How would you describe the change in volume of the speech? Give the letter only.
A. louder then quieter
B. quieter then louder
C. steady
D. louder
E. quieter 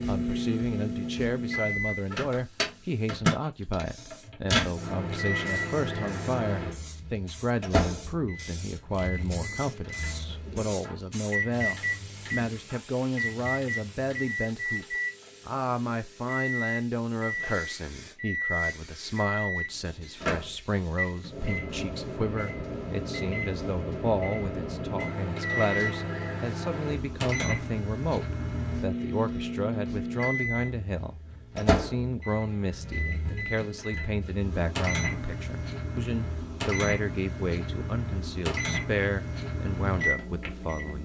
C.